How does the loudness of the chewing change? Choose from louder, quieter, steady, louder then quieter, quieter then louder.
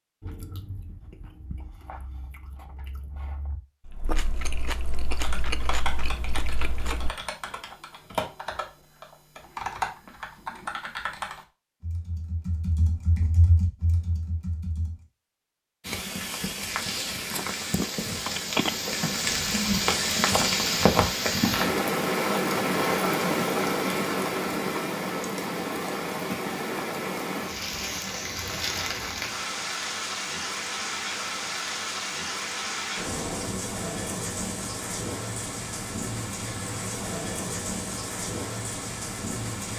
louder.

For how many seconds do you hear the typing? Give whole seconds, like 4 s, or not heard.
10 s.